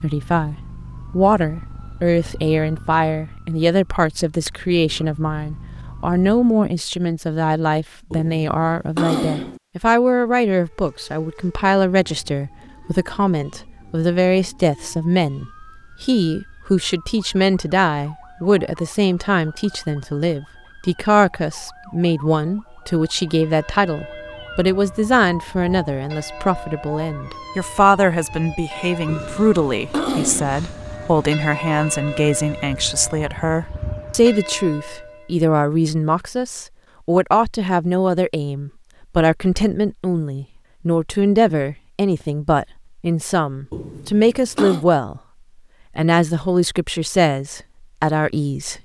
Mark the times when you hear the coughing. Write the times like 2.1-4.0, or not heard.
8.1-9.6, 29.1-30.6, 43.7-44.9.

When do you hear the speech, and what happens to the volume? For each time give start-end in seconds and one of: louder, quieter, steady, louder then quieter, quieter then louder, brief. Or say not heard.
0.0-45.2 steady
46.0-48.7 brief.